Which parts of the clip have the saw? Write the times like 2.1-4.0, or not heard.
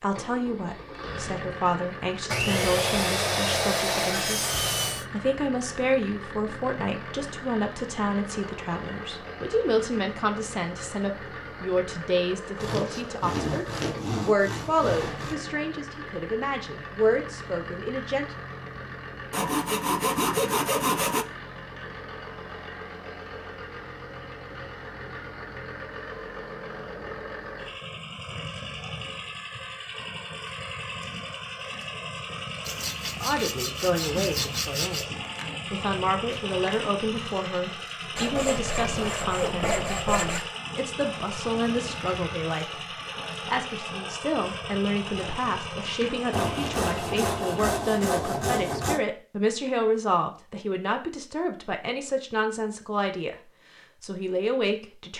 2.3-5.0, 12.6-15.3, 19.3-21.2, 32.6-35.0, 38.1-40.5, 46.3-49.0.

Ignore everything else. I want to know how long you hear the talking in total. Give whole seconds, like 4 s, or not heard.
40 s.